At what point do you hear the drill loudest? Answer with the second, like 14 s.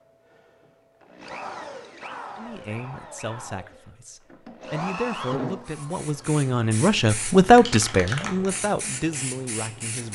5 s.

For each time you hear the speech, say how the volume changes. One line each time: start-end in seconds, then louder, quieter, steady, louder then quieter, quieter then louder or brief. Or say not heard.
2.4-10.1 louder then quieter.